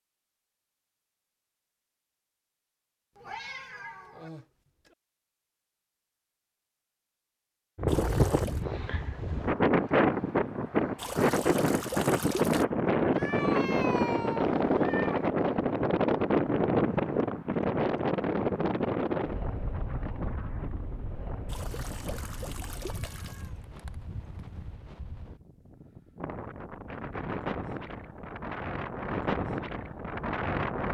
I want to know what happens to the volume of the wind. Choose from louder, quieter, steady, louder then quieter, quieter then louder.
quieter then louder.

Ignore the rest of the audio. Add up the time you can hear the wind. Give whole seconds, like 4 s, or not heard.
23 s.